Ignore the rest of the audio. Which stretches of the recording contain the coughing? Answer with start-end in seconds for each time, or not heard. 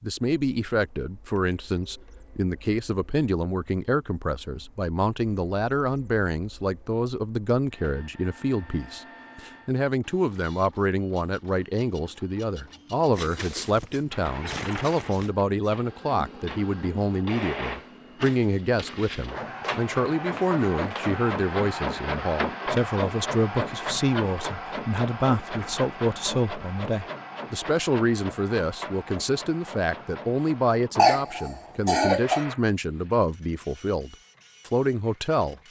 13.2-15.7, 30.9-32.5.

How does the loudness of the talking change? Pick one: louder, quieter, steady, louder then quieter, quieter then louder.
steady.